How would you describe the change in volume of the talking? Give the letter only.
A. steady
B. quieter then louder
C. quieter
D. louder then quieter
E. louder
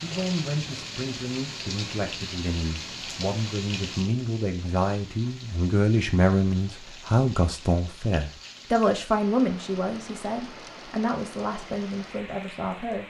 D.